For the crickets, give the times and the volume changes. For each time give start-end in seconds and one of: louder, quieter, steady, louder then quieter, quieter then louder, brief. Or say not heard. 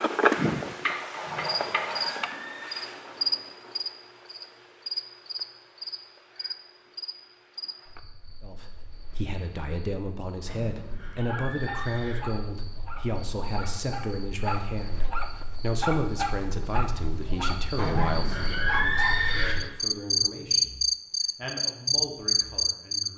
0.0-23.1 quieter then louder.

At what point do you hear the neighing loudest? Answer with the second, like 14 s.
19 s.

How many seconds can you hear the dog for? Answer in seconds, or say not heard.
8 s.